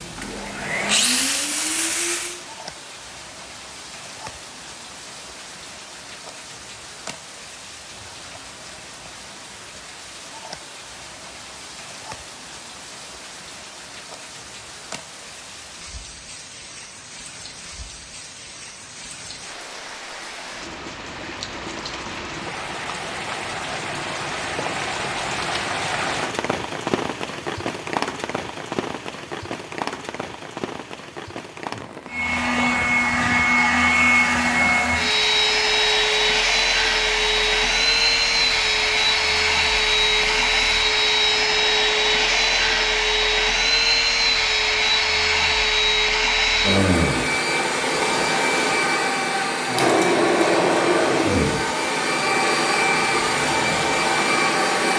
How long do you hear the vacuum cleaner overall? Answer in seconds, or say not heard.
25 s.